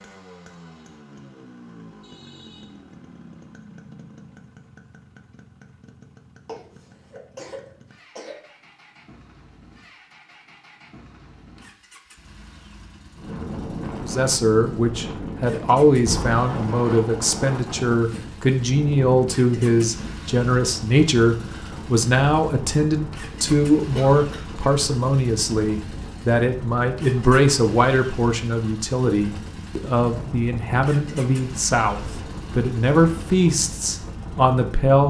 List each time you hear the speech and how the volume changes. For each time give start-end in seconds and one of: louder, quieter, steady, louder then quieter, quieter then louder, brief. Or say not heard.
14.0-35.0 steady.